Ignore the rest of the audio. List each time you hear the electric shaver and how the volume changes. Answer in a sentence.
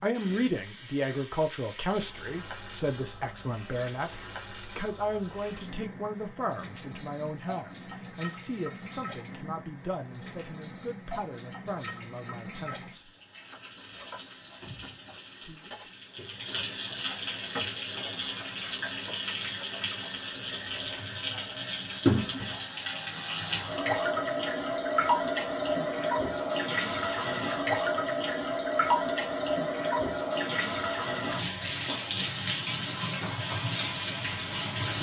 You can't hear the electric shaver here.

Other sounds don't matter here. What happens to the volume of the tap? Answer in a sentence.
The loudness of the tap goes up.